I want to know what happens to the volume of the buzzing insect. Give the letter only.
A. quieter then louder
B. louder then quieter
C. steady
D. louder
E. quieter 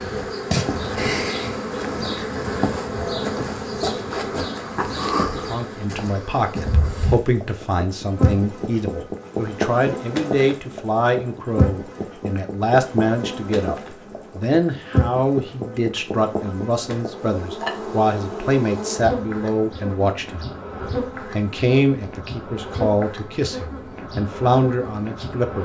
E.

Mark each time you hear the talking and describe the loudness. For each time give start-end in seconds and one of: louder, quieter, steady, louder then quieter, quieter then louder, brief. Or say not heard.
5.5-25.6 steady.